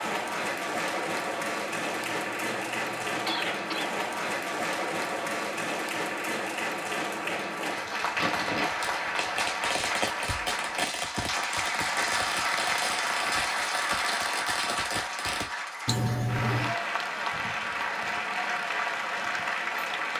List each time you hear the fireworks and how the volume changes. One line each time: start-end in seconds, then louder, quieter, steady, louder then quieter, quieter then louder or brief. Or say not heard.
8.2-15.5 steady.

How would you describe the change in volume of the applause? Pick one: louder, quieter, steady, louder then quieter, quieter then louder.
steady.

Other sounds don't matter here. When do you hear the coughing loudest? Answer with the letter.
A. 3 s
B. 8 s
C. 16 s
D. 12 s
C.